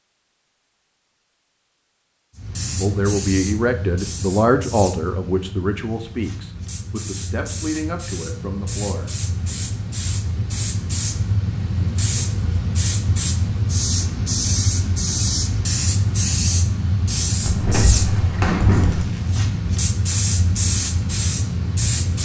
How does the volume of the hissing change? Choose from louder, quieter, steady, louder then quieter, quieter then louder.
louder.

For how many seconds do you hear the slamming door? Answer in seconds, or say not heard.
2 s.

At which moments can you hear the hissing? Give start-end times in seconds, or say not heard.
2.4-22.1.